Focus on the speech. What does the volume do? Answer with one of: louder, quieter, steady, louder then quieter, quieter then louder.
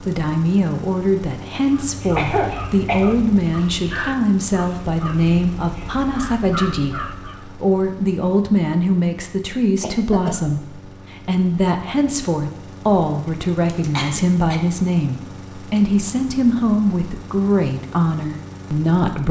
steady.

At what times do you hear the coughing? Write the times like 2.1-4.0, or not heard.
2.1-3.1, 9.8-10.5, 13.7-14.6.